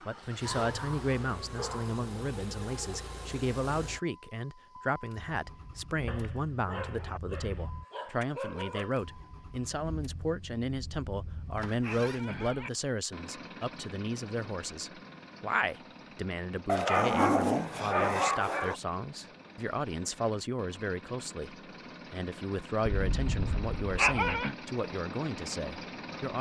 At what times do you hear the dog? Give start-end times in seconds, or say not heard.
0.4-2.0, 6.0-8.9, 10.7-12.7, 16.6-18.8, 22.9-24.6.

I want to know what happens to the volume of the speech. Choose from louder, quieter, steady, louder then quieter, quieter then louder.
steady.